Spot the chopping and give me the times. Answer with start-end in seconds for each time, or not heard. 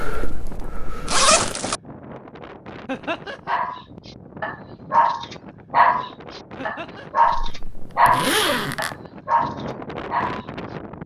0.0-1.6.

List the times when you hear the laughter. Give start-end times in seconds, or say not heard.
2.9-3.6, 6.5-7.2.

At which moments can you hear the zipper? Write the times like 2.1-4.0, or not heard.
1.1-1.8, 7.5-8.9.